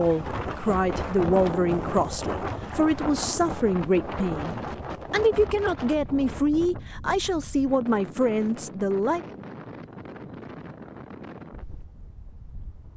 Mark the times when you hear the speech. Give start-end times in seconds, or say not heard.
0.0-9.2.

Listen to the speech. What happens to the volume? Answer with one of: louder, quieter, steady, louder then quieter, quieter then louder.
steady.